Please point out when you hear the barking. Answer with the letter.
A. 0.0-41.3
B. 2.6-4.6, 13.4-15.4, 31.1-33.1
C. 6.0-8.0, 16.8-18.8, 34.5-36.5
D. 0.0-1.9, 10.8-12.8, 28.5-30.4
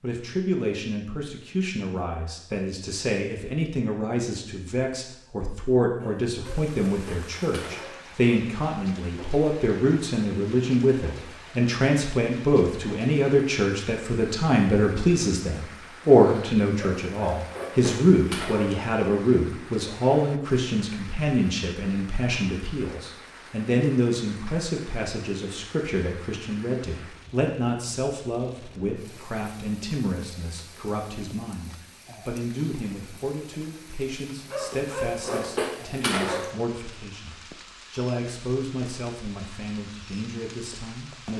C.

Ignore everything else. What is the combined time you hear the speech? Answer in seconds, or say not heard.
41 s.